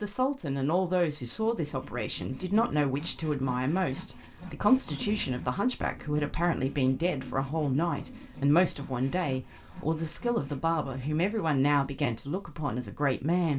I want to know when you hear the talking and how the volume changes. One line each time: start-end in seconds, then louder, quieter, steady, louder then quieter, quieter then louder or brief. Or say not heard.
0.0-13.5 steady.